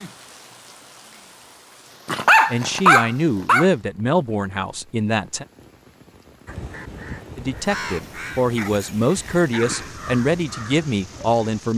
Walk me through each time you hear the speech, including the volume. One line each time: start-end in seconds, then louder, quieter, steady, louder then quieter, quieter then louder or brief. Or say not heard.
2.5-5.5 brief
7.3-11.7 steady.